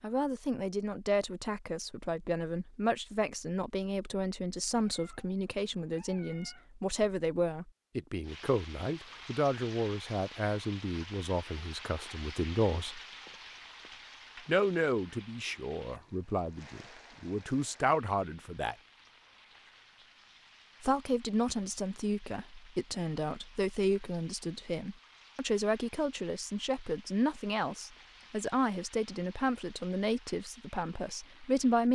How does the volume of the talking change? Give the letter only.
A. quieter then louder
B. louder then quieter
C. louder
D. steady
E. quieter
D.